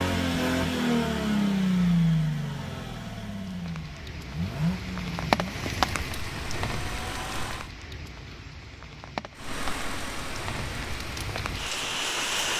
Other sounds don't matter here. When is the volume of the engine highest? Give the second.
2 s.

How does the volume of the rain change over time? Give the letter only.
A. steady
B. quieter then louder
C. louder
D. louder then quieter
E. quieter
B.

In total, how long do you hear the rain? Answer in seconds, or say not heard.
9 s.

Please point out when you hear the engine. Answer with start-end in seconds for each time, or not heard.
0.0-7.7, 9.3-12.3.